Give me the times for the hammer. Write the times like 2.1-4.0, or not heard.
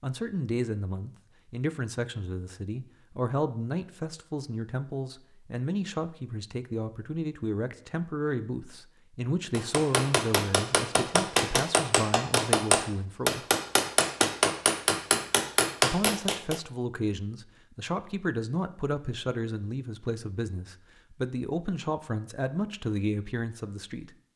9.5-16.6.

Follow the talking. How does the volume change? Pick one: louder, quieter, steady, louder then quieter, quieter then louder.
steady.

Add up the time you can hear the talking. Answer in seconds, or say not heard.
22 s.